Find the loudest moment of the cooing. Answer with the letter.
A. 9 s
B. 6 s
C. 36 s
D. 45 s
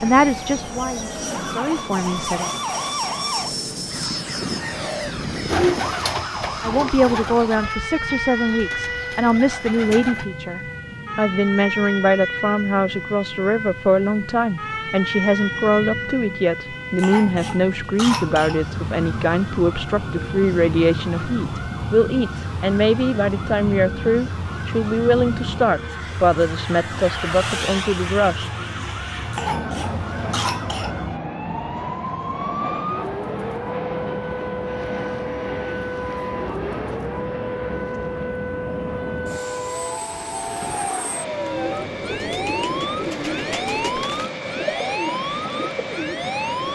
B.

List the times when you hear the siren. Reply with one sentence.
You can hear the siren from 0.0 to 46.7 s.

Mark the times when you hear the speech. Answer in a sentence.
The speech can be heard from 0.0 to 2.5 s and from 6.6 to 28.5 s.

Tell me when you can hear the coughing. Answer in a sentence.
You can hear the coughing from 16.9 to 18.6 s and from 29.3 to 30.9 s.